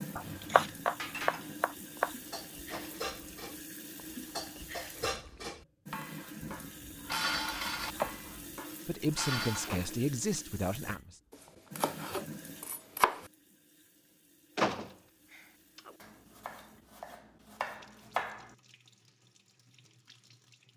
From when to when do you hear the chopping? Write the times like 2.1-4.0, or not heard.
0.1-2.1, 6.6-8.6, 11.3-13.3, 16.0-18.6.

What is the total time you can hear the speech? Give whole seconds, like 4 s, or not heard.
2 s.